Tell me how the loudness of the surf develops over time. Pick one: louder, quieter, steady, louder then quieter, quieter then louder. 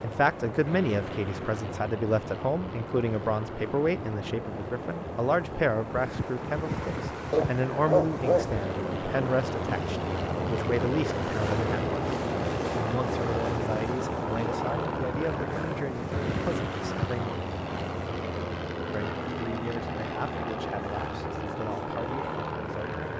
louder then quieter.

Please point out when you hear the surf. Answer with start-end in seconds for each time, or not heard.
0.0-23.1.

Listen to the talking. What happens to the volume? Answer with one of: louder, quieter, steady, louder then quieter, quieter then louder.
quieter.